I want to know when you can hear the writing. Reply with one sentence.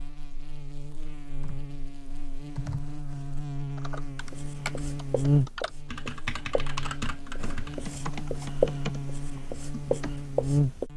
The writing can be heard from 4.2 to 6.8 s and from 7.3 to 10.8 s.